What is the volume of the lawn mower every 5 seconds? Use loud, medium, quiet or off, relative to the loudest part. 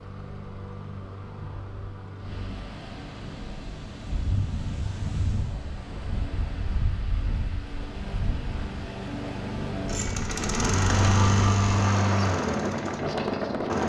quiet, medium, loud.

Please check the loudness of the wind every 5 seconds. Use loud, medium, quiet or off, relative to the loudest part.
medium, medium, loud.